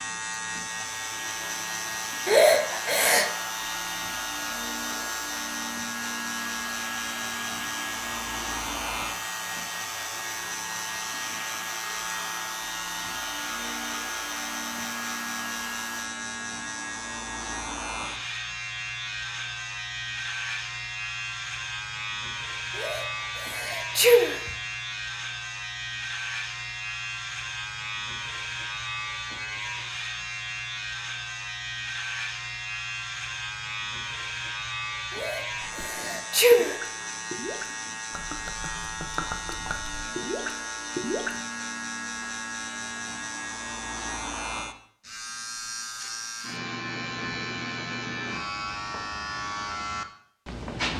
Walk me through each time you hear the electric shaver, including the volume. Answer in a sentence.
The electric shaver can be heard from 0.0 to 50.9 s, at a steady volume.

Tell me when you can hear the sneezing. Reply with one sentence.
The sneezing can be heard from 2.2 to 3.3 s, from 22.8 to 24.5 s and from 35.1 to 36.8 s.